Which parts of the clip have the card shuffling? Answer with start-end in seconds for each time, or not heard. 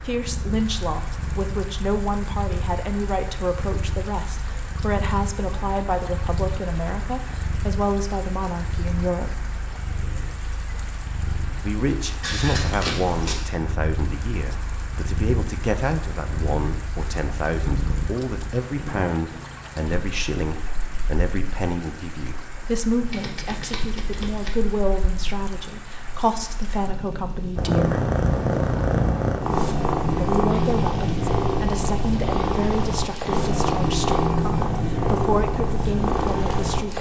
12.2-13.4, 23.1-24.5.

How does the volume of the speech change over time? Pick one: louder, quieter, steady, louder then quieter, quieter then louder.
steady.